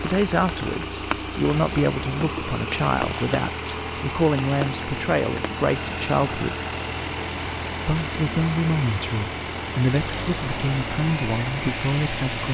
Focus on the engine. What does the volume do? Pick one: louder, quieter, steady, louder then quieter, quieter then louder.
steady.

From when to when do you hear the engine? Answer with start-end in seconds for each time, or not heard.
0.0-12.4.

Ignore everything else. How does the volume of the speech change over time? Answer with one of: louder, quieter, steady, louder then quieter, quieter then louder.
steady.